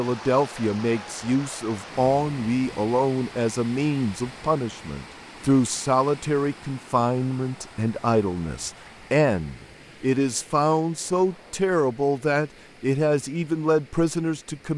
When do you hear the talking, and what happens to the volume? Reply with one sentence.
You can hear the talking from 0.0 to 14.7 s, at a steady volume.